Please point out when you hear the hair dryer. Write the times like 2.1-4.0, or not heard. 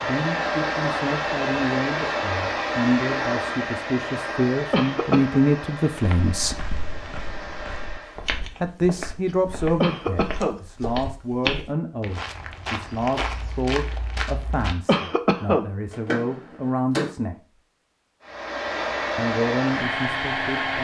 0.0-8.3, 18.2-20.7.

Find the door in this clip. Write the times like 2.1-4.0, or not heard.
15.9-17.1.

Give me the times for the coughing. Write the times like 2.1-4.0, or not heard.
4.7-5.4, 9.8-10.6, 14.8-15.7.